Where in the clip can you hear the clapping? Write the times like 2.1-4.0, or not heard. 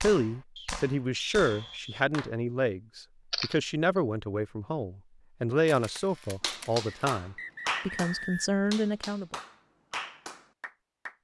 0.0-2.3, 6.0-11.1.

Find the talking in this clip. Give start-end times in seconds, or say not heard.
0.0-9.3.